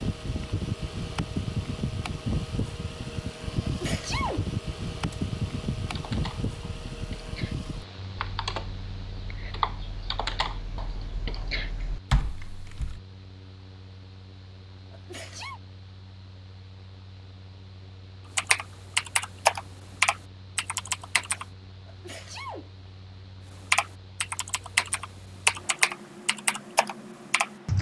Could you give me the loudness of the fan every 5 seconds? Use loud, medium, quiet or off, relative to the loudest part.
loud, loud, quiet, quiet, quiet, quiet.